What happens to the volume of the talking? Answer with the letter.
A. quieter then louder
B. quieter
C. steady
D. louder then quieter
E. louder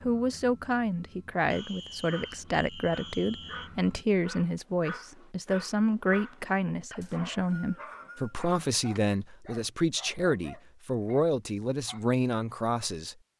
C.